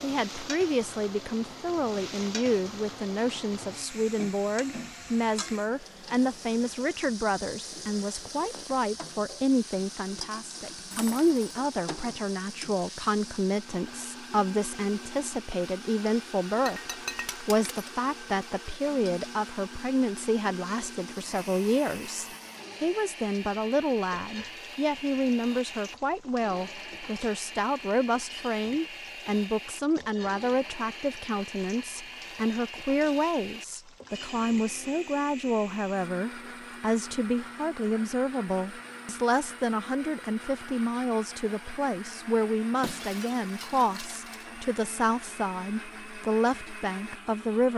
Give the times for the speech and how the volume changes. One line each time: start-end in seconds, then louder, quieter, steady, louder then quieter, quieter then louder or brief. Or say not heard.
0.0-16.8 steady
17.4-47.7 steady.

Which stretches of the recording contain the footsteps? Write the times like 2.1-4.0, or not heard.
not heard.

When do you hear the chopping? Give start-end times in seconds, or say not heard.
not heard.